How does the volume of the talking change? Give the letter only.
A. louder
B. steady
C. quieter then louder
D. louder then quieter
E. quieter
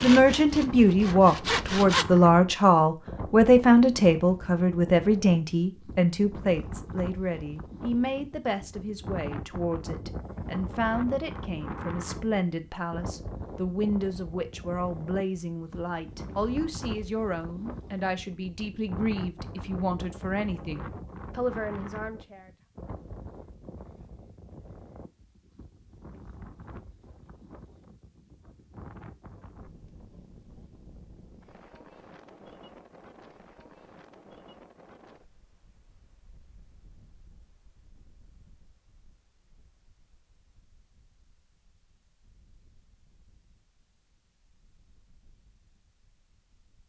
E.